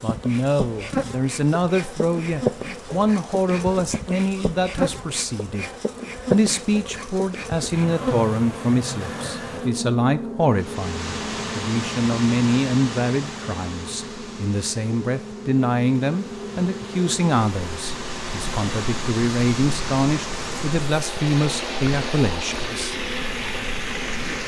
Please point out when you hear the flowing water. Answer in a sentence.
You can hear the flowing water from 10.5 to 24.4 s.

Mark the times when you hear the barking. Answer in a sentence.
The barking can't be heard in this clip.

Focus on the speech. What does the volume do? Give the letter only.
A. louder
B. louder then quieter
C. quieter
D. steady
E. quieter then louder
D.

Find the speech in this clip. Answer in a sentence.
The speech can be heard from 0.0 to 5.7 s and from 6.3 to 22.9 s.